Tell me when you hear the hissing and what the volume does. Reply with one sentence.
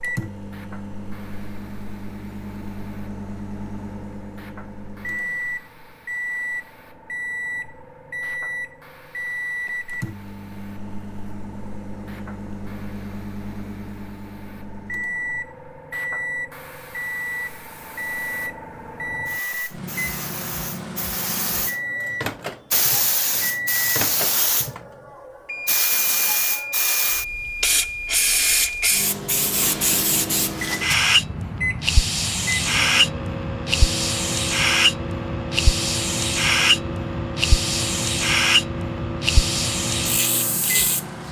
The hissing can be heard from 0.0 to 41.2 s, getting louder.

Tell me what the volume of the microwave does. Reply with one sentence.
The loudness of the microwave stays about the same.